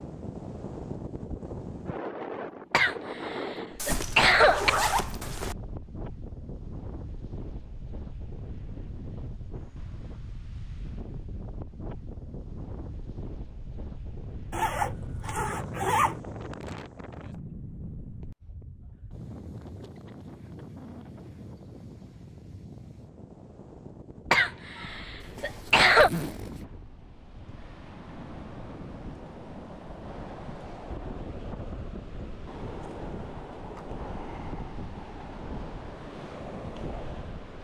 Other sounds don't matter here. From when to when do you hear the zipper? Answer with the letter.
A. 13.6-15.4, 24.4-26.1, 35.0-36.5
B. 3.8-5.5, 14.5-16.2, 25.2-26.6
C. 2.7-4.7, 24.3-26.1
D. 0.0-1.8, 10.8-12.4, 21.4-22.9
B.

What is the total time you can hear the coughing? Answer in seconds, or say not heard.
4 s.